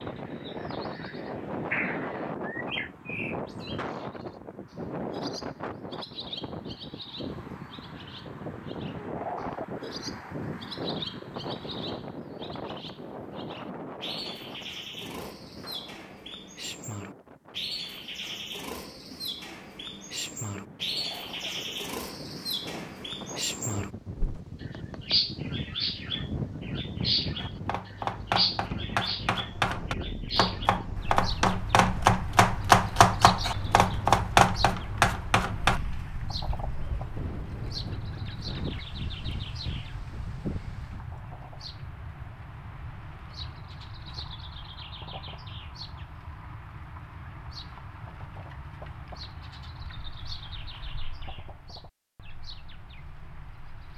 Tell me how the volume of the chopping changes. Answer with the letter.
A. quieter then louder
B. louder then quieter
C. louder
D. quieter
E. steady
C.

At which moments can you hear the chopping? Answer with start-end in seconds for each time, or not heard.
27.4-35.8.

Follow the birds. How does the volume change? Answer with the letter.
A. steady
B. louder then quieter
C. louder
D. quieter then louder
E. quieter
B.